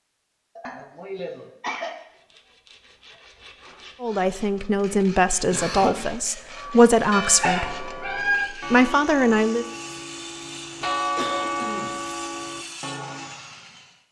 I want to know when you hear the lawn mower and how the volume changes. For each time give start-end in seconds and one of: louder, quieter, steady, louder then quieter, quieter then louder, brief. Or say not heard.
not heard.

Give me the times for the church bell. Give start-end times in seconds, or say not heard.
6.4-13.4.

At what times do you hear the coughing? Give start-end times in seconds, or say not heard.
0.6-1.9, 5.5-6.0, 10.8-12.1.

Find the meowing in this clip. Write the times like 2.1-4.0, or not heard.
7.3-8.4.